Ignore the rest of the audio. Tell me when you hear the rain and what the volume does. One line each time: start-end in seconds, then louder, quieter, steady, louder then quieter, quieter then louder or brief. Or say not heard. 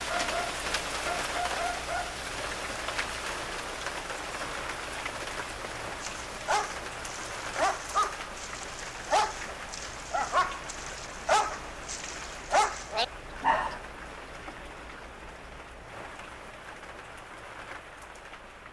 0.0-18.6 quieter.